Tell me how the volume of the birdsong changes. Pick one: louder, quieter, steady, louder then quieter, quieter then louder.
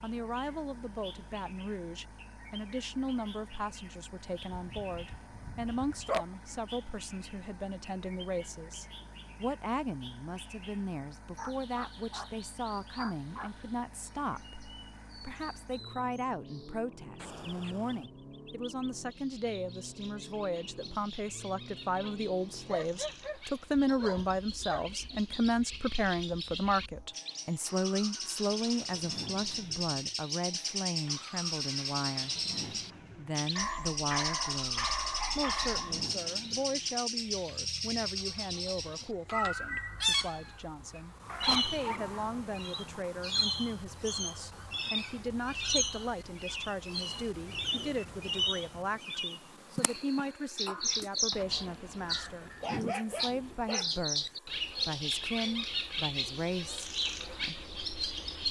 louder.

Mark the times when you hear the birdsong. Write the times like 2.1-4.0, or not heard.
0.0-58.4.